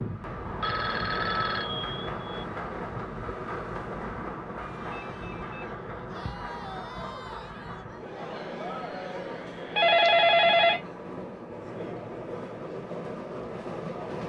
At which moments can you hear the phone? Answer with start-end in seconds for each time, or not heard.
0.5-2.5, 5.0-6.3, 9.8-10.8.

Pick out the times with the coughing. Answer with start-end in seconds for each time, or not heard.
not heard.